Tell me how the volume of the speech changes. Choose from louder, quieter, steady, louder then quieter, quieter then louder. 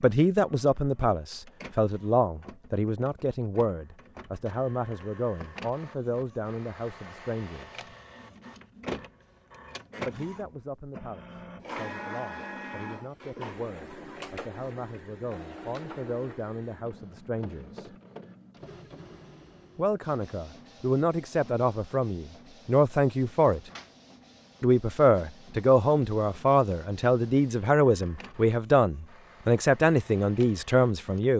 quieter then louder.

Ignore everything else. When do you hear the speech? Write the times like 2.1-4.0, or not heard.
0.0-7.8, 10.1-17.9, 19.8-23.6, 24.6-31.3.